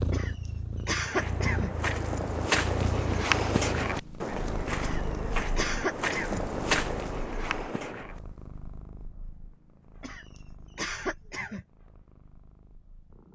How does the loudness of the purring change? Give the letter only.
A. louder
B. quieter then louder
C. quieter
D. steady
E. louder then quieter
C.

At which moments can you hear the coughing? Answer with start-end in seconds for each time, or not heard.
0.1-1.9, 4.8-6.5, 10.0-11.7.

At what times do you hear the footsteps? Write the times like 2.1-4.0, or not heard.
1.1-8.2.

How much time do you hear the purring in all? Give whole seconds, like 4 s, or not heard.
13 s.